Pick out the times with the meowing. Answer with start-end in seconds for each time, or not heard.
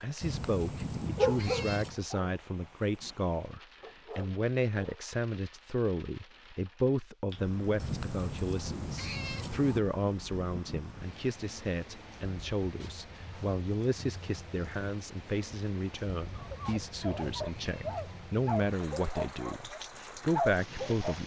0.2-2.0, 7.8-9.8, 16.2-18.0.